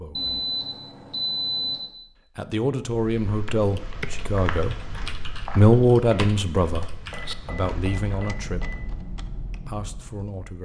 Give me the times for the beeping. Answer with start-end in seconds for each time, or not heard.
0.1-1.9, 7.1-9.1.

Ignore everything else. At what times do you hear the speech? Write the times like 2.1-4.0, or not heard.
0.0-0.5, 2.4-4.8, 5.5-6.8, 7.5-8.8, 9.7-10.6.